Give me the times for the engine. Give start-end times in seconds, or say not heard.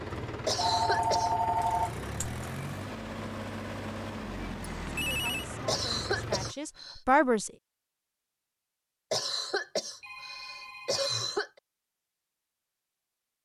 0.0-6.5.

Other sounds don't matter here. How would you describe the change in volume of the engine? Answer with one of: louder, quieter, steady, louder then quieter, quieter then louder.
steady.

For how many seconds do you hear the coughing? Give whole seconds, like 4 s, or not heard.
5 s.